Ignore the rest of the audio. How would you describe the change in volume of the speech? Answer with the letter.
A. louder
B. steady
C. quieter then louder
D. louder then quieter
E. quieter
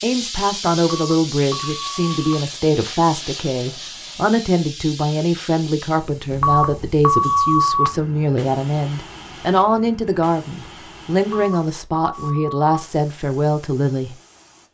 B.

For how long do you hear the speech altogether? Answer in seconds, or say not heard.
14 s.